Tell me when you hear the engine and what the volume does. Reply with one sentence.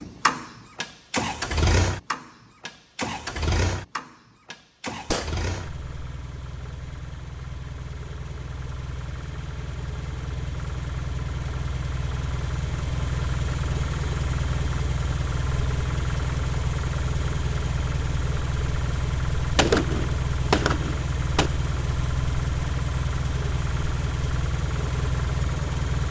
You can hear the engine from 0.0 to 26.0 s, getting quieter then louder.